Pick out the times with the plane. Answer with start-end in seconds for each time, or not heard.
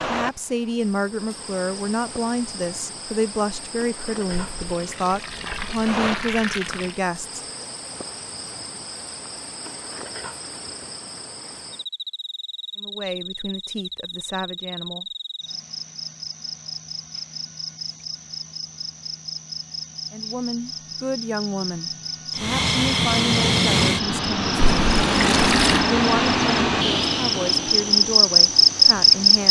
22.3-29.4.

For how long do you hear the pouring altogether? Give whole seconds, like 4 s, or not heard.
4 s.